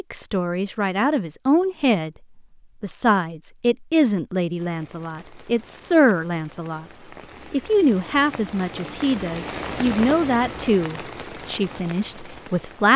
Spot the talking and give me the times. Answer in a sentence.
You can hear the talking from 0.0 to 2.1 s, from 2.8 to 6.8 s and from 7.5 to 12.9 s.